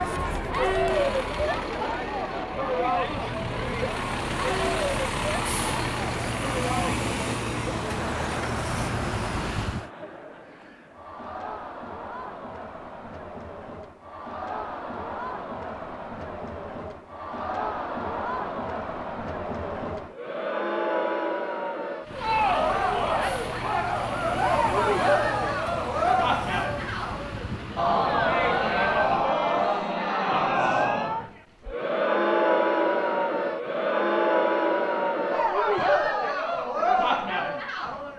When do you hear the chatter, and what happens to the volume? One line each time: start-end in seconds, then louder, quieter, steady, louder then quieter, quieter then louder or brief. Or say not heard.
0.0-38.1 quieter then louder.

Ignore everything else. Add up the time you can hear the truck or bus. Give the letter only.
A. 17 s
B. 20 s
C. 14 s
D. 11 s
A.